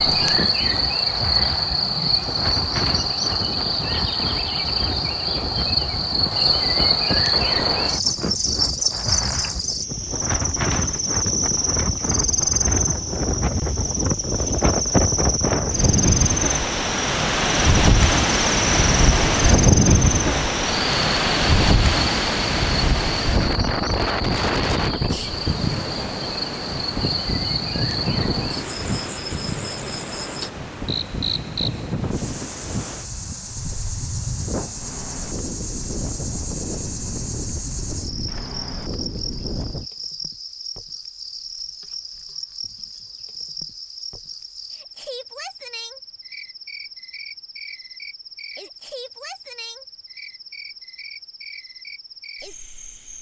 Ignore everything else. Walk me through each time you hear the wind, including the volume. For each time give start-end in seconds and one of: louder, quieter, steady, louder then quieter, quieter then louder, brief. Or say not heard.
0.0-39.9 louder then quieter.